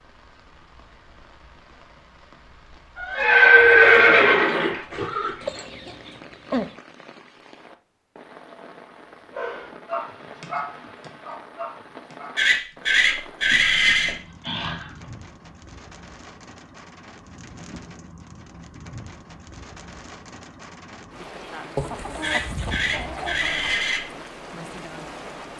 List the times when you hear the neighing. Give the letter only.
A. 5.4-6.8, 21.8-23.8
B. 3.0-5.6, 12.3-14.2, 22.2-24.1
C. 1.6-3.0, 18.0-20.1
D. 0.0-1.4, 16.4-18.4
B.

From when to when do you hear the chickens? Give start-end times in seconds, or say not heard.
5.4-6.8, 21.8-23.8.